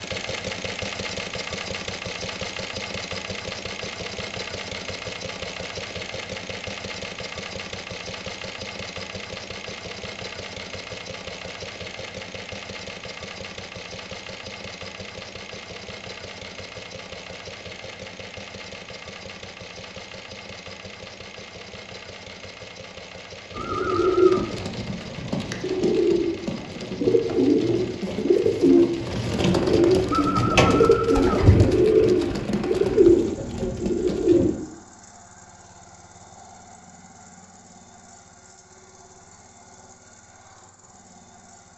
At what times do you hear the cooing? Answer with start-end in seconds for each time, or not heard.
23.6-34.5.